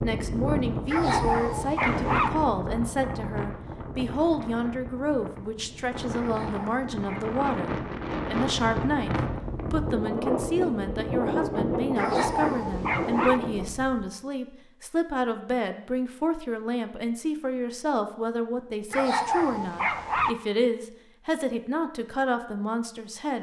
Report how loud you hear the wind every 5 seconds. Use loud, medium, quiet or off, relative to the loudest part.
loud, loud, loud, off, off.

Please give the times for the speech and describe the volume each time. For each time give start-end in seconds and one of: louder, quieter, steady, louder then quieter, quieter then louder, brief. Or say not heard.
0.0-23.3 steady.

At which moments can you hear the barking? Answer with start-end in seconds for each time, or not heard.
0.8-2.3, 6.2-7.3, 11.9-13.4, 18.9-20.4.